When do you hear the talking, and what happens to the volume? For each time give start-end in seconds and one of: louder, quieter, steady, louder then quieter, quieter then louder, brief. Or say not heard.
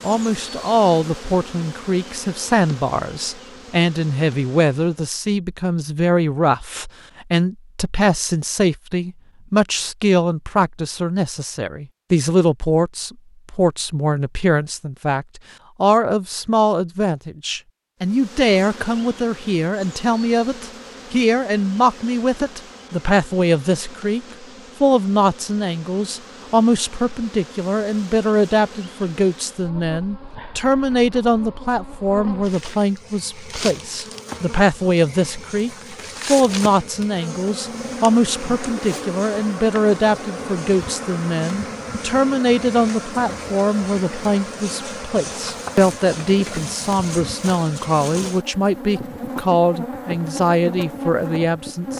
0.0-51.9 steady.